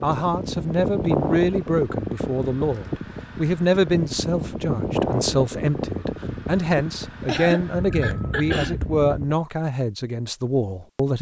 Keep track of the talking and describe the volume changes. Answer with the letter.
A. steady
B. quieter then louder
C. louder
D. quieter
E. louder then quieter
A.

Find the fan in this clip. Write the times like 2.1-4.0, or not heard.
0.0-9.3.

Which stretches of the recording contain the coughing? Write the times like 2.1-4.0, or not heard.
7.2-8.8.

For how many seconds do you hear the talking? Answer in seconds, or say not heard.
11 s.